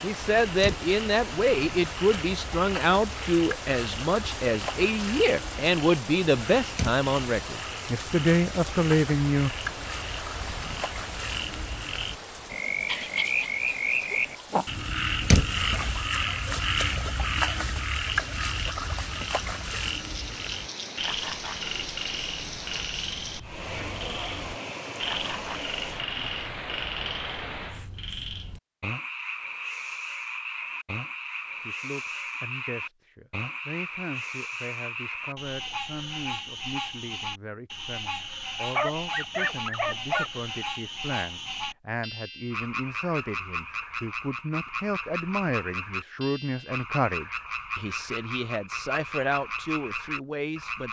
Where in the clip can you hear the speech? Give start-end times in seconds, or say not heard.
0.0-9.6, 31.6-50.8.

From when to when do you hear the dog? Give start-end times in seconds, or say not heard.
12.8-14.7, 38.7-40.3.